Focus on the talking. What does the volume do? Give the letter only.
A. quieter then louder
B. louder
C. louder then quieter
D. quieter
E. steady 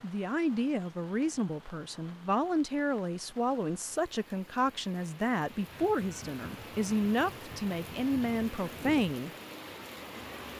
E.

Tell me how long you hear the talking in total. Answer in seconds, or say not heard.
9 s.